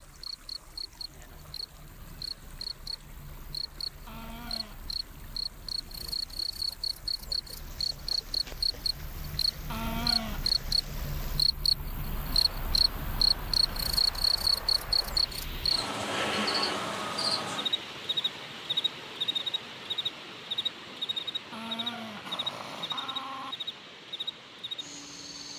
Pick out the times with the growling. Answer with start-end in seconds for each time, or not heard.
4.0-4.8, 9.7-10.5, 21.5-23.6.